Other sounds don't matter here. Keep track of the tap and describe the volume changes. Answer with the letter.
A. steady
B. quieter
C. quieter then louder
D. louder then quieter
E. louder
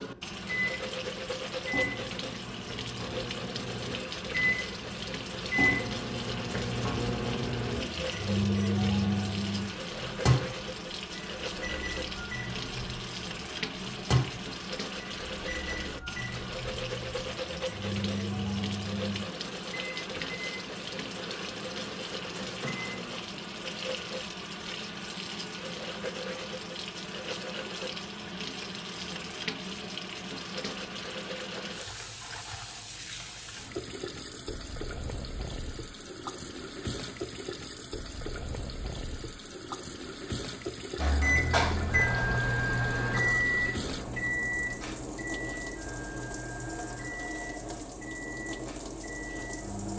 A.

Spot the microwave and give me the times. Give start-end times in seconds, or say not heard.
0.0-23.2, 41.0-49.9.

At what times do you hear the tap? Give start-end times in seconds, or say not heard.
0.0-49.9.